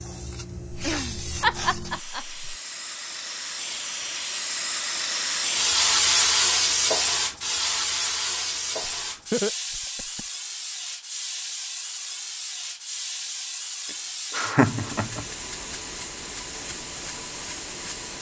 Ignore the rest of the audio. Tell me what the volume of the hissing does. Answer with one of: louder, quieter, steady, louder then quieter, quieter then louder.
louder then quieter.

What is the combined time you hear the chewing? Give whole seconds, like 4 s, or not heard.
not heard.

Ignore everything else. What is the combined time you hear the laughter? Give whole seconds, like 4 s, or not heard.
4 s.